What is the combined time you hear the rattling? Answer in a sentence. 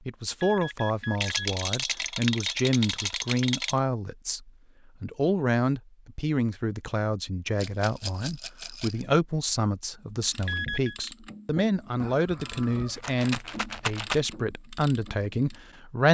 You can hear the rattling for 6 seconds altogether.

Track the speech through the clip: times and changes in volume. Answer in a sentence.
You can hear the speech from 0.1 to 16.0 s, at a steady volume.